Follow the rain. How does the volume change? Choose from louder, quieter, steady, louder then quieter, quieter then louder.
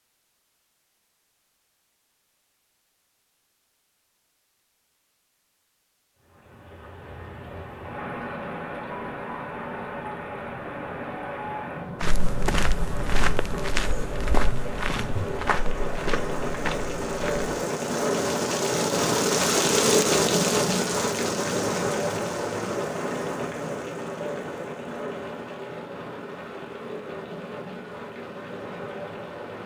louder then quieter.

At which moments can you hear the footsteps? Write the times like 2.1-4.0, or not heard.
12.0-17.5.